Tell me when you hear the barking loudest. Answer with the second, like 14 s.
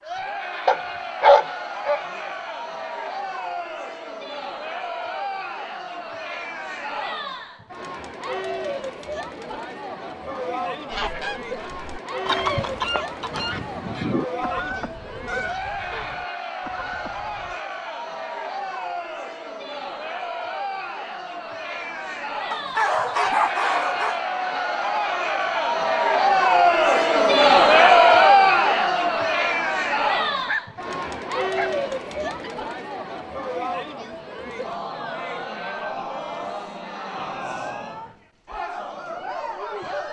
1 s.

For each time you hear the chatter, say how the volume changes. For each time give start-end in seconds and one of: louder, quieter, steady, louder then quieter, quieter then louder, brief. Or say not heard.
0.0-40.0 louder then quieter.